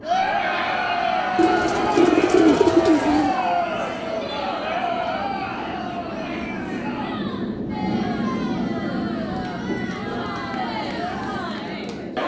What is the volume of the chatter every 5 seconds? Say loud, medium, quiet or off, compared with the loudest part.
loud, medium, medium.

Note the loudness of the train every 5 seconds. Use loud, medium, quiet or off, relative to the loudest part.
medium, loud, loud.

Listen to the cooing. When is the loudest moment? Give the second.
3 s.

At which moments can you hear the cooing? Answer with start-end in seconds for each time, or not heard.
1.4-3.4.